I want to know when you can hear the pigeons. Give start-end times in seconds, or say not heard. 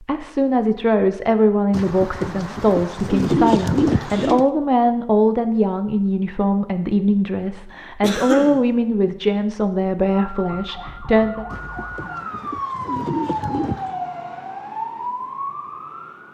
1.7-4.5, 11.5-14.0.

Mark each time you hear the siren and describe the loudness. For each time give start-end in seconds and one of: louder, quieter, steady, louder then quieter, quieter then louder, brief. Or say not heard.
10.1-16.2 louder.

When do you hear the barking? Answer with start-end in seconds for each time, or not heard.
not heard.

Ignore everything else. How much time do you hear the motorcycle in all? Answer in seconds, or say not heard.
not heard.